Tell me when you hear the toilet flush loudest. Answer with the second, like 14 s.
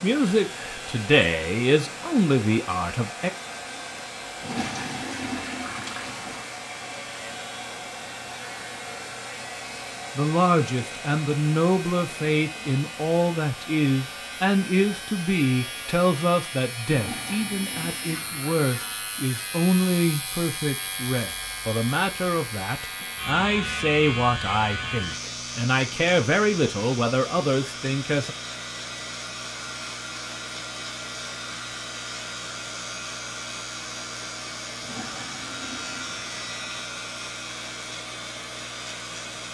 5 s.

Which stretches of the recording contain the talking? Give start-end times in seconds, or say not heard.
0.0-3.3, 10.2-28.4.